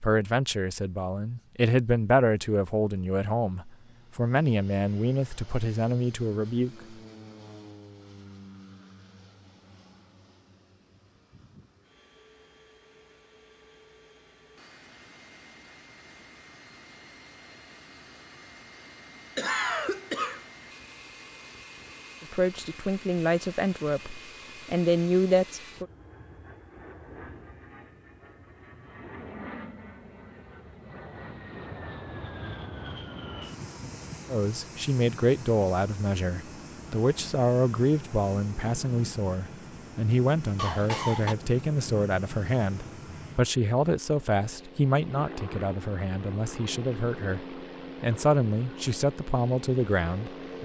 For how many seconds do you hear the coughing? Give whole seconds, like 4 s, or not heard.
2 s.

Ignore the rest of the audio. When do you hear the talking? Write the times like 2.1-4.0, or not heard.
0.0-6.8, 22.2-25.9, 34.3-50.6.